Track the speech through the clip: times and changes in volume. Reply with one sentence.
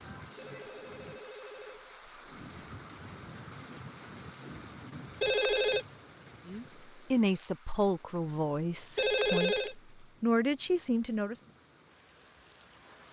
You can hear the speech from 6.5 to 11.4 s, getting quieter then louder.